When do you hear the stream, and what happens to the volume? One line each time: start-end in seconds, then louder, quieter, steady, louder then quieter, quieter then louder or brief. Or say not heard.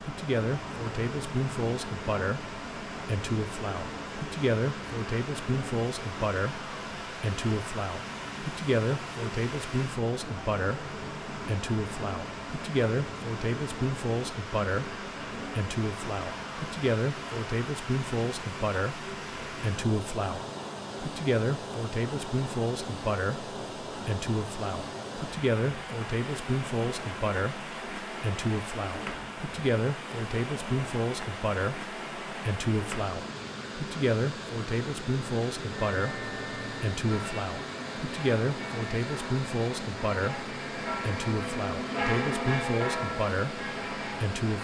0.0-44.5 steady.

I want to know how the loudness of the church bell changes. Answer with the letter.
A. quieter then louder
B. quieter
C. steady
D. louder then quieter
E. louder
E.